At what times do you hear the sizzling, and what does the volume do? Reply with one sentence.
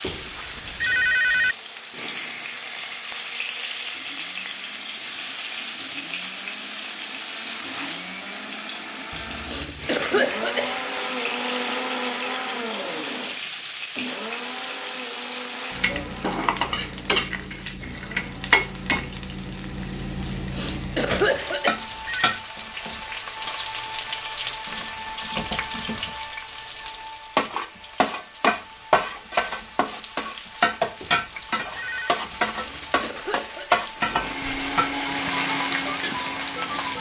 The sizzling can be heard from 0.0 to 36.9 s, getting louder.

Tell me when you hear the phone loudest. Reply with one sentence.
The volume of the phone peaks at 1 second.